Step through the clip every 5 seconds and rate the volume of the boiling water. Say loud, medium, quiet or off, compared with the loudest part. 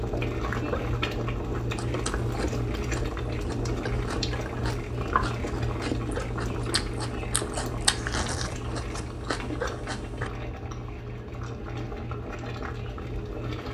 loud, loud, medium.